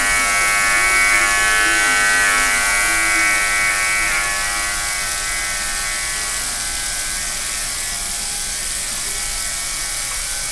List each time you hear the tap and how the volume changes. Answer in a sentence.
You can hear the tap from 0.0 to 10.4 s, at a steady volume.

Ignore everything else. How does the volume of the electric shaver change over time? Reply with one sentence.
The loudness of the electric shaver goes down.